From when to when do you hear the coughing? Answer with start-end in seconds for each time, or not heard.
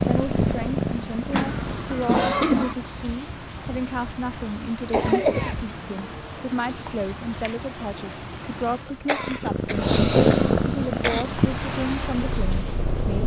1.3-2.8, 4.9-5.6, 8.8-11.2.